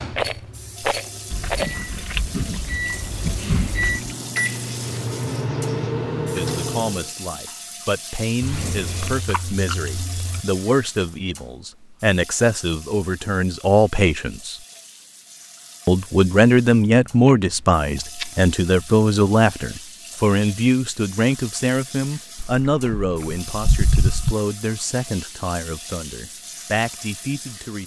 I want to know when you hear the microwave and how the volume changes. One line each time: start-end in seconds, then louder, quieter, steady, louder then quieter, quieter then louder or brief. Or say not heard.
0.0-7.1 louder.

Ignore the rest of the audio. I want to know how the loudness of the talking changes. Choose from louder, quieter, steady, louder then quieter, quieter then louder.
louder then quieter.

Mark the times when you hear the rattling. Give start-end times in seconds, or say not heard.
0.1-1.8.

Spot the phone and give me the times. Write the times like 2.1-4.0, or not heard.
not heard.